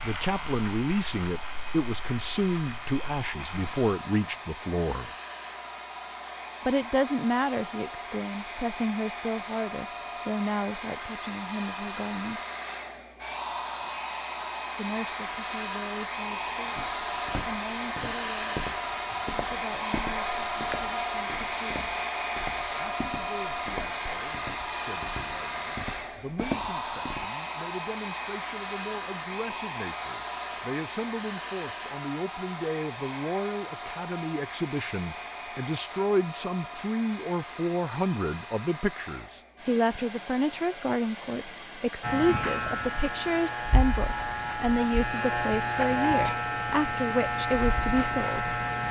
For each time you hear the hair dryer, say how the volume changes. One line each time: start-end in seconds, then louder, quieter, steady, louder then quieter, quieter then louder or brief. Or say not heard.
0.0-48.8 louder then quieter.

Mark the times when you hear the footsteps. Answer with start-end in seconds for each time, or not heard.
16.8-27.2.